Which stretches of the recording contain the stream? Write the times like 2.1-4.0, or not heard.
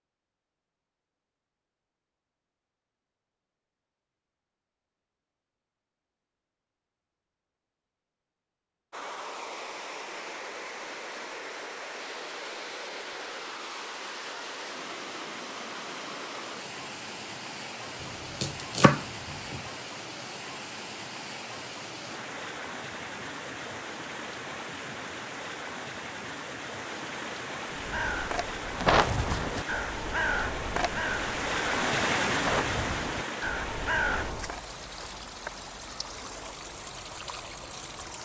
8.9-38.1.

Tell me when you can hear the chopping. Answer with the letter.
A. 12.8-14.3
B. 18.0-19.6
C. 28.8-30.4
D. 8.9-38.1
B.